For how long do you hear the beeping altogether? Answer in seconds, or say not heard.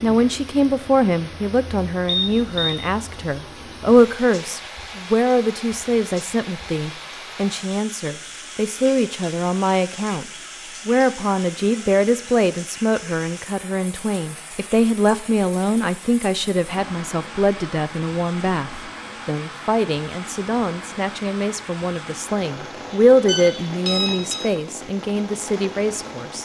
2 s.